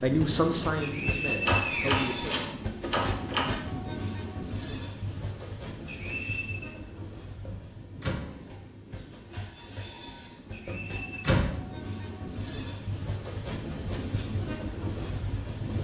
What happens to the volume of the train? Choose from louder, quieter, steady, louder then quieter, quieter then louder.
quieter then louder.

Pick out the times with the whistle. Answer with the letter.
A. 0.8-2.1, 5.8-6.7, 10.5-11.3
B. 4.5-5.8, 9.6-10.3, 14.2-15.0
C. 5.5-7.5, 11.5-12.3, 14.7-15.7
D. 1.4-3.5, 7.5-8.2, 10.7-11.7
A.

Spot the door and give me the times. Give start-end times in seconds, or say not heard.
1.4-3.5, 7.5-8.2, 10.7-11.7.